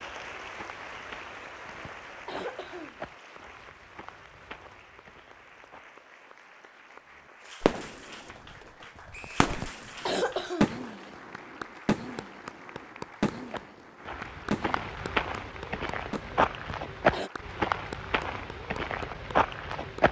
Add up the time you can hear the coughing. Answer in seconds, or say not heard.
5 s.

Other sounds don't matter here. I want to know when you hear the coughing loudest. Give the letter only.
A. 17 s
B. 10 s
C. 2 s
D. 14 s
B.